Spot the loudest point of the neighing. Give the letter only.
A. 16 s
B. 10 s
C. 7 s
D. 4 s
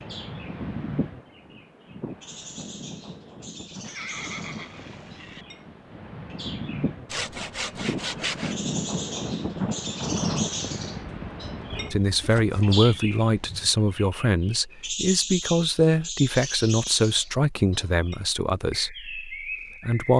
D.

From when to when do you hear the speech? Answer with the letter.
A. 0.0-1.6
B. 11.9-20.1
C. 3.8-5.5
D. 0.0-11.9
B.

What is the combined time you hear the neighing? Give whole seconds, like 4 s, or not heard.
2 s.